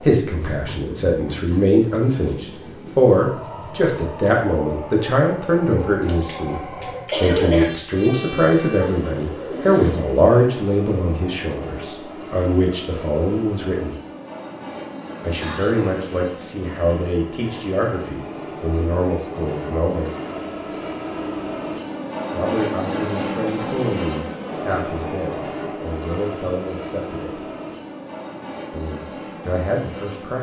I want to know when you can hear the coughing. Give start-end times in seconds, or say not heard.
5.7-7.7, 15.2-16.1.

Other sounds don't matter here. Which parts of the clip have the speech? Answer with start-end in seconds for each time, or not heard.
0.0-13.9, 15.2-20.1, 22.3-27.4, 28.7-30.3.